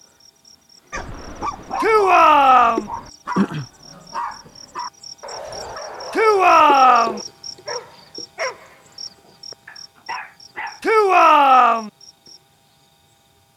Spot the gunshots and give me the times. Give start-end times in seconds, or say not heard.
not heard.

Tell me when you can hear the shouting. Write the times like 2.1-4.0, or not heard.
1.8-2.9, 6.1-7.2, 10.8-11.9.